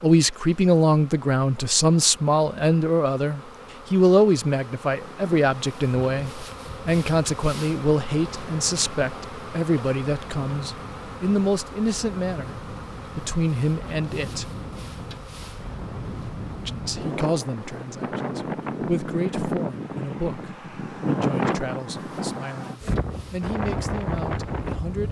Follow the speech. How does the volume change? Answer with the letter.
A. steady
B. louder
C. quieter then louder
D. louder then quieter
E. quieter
E.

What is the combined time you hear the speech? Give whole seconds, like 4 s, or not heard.
23 s.